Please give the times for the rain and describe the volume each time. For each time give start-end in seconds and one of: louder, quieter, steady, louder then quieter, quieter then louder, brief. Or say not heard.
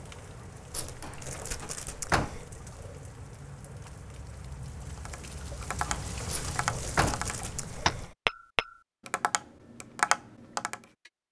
0.0-8.1 louder.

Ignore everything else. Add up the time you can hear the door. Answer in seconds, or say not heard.
3 s.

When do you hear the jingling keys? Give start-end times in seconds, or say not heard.
not heard.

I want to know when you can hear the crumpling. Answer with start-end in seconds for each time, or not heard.
0.7-2.5, 6.3-8.2.